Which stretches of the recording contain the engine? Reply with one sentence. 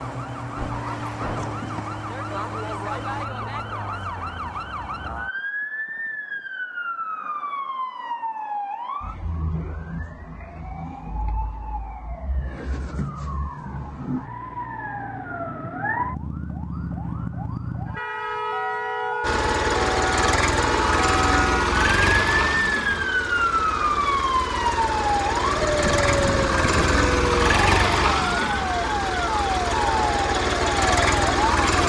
The engine can be heard from 19.2 to 31.8 s.